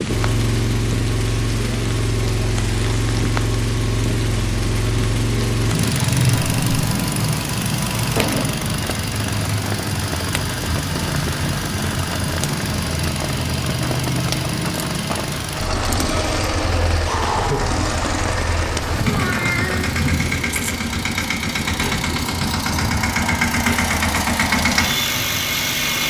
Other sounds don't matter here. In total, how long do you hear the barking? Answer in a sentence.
The barking can't be heard in this clip.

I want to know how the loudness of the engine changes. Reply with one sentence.
The volume of the engine stays about the same.